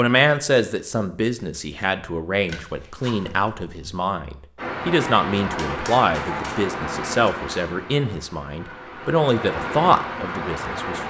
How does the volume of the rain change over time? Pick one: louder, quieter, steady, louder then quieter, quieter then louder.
quieter then louder.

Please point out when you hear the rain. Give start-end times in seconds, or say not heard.
4.5-11.0.